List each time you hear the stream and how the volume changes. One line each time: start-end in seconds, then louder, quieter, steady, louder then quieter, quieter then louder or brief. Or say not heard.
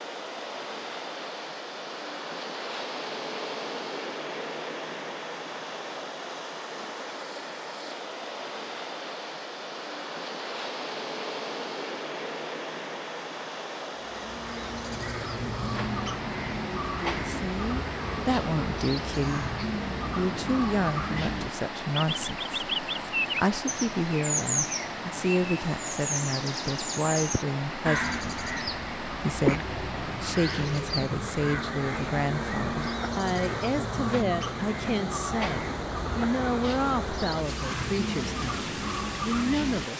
0.0-39.9 steady.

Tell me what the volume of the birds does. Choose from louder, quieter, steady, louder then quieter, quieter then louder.
steady.